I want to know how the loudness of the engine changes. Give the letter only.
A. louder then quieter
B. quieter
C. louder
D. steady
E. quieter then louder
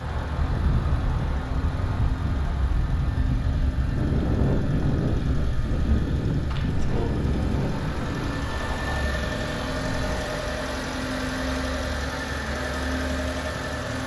C.